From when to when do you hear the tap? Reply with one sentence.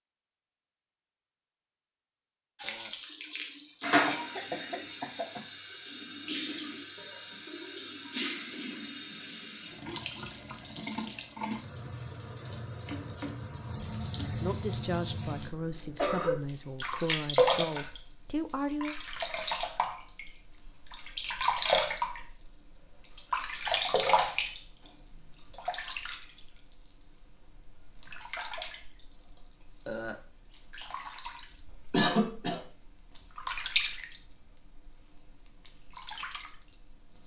You can hear the tap from 2.6 to 37.2 s.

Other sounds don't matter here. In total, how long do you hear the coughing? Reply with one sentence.
The coughing can be heard for 3 seconds in total.